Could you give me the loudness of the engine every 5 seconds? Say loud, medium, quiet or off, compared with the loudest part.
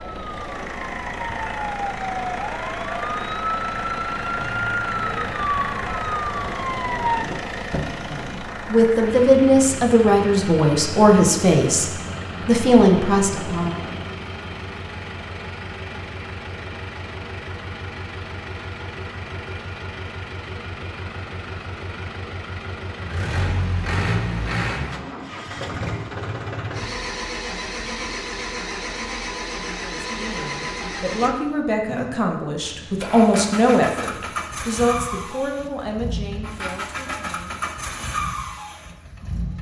loud, loud, loud, medium, loud, loud, loud, loud.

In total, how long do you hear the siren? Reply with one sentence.
The siren can be heard for 7 seconds in total.